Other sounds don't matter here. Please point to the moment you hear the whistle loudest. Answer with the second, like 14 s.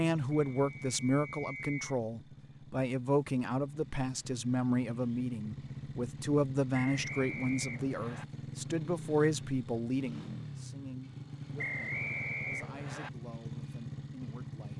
12 s.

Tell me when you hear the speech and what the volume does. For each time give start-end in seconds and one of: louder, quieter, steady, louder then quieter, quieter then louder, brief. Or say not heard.
0.0-14.7 quieter.